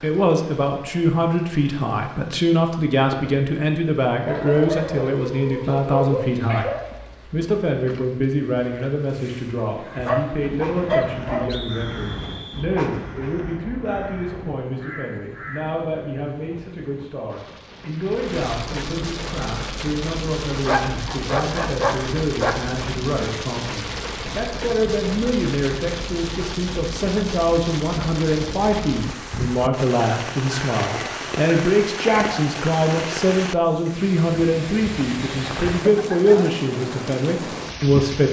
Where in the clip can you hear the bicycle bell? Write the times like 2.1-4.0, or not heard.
not heard.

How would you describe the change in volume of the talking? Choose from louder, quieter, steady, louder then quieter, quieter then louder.
quieter then louder.